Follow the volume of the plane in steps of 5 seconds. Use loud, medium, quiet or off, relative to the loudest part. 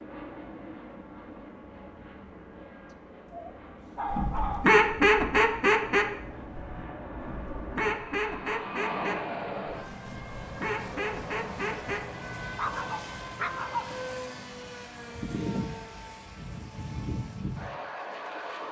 medium, loud, loud, loud.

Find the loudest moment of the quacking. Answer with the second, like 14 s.
5 s.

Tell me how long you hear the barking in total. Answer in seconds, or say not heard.
3 s.